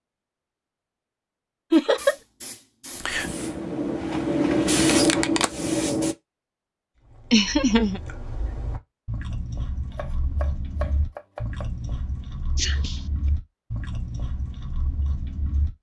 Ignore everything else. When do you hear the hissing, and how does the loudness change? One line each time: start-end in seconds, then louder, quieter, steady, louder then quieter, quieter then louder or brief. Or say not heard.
1.7-6.2 louder.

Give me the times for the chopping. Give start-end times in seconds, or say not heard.
9.9-11.7.